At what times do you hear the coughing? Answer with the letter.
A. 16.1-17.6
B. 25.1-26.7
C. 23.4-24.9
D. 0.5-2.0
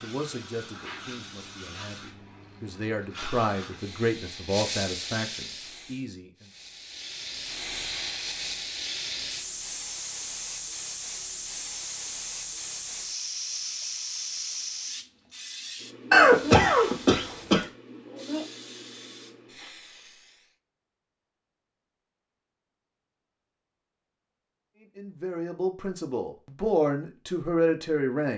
A.